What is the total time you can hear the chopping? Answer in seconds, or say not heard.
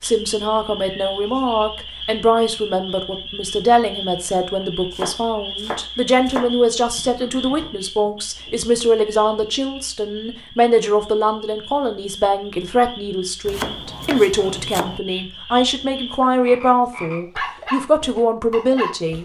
3 s.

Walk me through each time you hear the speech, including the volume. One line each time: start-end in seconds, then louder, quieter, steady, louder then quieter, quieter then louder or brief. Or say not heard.
0.0-19.2 steady.